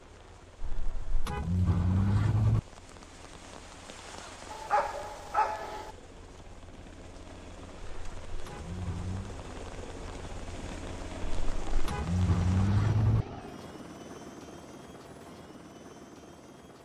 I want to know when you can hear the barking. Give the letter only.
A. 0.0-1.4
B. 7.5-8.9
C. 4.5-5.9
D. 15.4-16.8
C.